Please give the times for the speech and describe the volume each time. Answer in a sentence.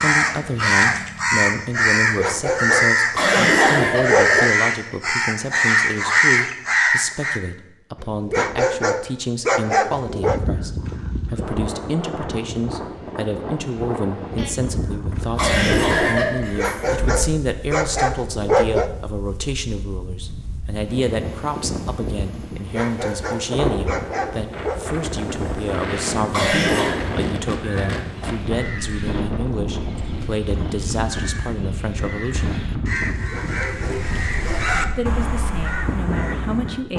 The speech can be heard from 0.0 to 32.5 s, at a steady volume; and briefly from 35.0 to 36.9 s.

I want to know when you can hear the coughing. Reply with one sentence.
The coughing can be heard from 3.1 to 4.2 s, from 15.3 to 17.2 s and from 26.3 to 26.9 s.